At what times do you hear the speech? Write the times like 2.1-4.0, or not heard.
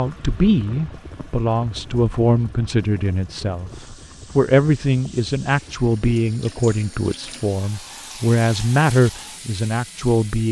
0.0-10.4.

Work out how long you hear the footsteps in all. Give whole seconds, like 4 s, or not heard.
not heard.